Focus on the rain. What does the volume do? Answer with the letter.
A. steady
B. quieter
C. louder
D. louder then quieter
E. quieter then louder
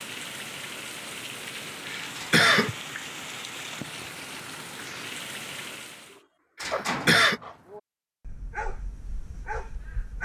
A.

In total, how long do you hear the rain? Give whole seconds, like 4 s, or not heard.
6 s.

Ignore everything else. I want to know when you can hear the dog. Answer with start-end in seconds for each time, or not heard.
6.7-10.2.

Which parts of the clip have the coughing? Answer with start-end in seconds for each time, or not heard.
1.9-2.8, 6.6-7.4.